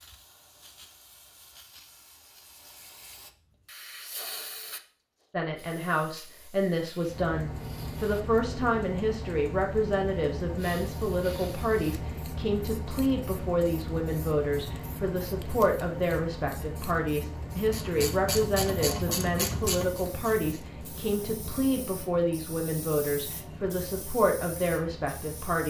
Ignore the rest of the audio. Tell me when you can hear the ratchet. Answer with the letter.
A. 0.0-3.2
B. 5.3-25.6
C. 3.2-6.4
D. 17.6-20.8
D.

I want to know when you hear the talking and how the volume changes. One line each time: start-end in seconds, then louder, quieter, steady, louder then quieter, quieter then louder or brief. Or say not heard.
5.3-25.6 steady.